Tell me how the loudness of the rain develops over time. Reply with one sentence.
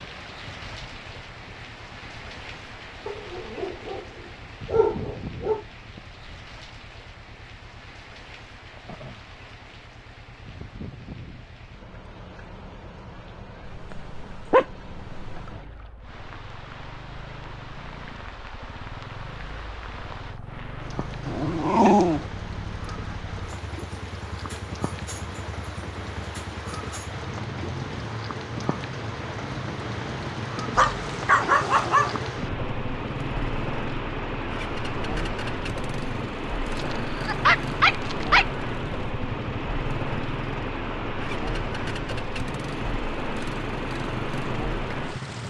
The loudness of the rain goes up.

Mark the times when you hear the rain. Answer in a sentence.
The rain can be heard from 0.0 to 45.4 s.